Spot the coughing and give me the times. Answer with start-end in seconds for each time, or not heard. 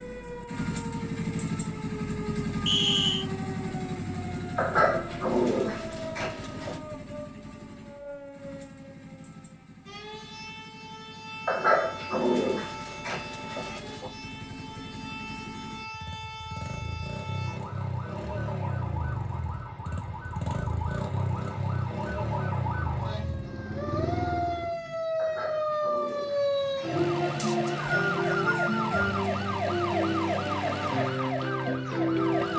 not heard.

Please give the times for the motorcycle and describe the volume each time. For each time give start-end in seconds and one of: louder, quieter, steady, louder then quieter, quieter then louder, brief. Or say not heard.
0.0-24.8 quieter then louder.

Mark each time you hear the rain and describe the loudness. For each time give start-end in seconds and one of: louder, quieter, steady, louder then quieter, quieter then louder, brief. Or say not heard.
not heard.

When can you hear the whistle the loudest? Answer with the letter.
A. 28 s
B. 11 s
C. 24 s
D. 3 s
D.